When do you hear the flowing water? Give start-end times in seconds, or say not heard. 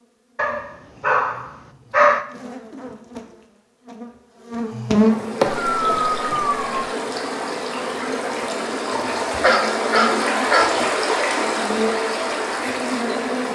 5.1-13.5.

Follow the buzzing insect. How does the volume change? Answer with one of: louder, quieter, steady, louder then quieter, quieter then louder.
louder then quieter.